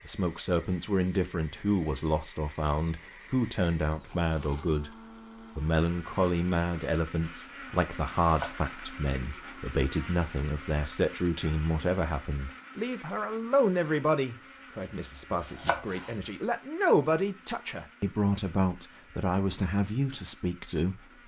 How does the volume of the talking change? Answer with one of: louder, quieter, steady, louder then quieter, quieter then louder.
steady.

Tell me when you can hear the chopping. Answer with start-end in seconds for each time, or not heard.
8.2-8.8, 14.8-16.1.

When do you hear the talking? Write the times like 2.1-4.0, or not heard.
0.1-5.0, 5.5-21.2.